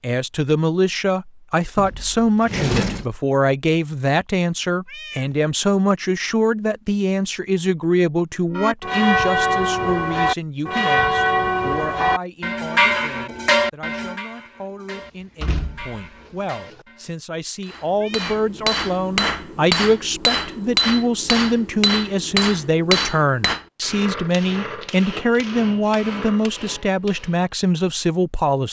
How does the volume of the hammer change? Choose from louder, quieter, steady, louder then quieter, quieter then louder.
quieter.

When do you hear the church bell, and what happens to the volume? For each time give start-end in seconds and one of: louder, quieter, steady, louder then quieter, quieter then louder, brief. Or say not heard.
8.5-17.1 quieter.